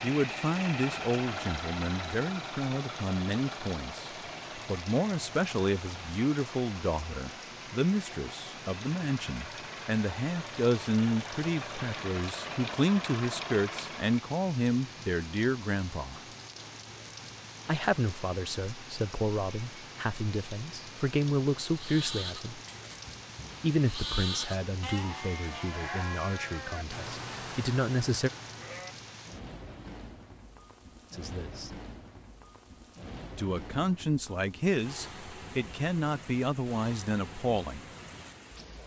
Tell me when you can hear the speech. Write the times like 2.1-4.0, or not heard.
0.0-16.2, 17.6-22.6, 23.6-28.3, 31.1-31.7, 33.4-37.9.